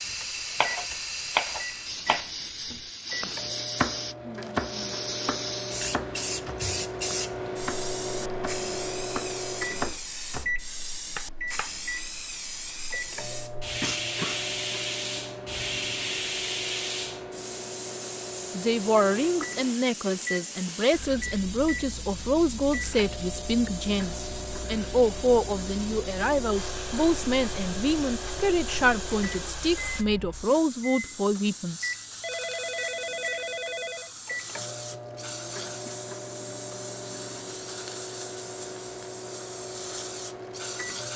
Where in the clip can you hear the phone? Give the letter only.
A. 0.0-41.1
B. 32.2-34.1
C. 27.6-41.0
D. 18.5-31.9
B.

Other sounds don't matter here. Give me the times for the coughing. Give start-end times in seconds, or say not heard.
13.8-14.4.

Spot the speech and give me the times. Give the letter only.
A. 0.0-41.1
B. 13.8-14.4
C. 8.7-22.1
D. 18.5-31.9
D.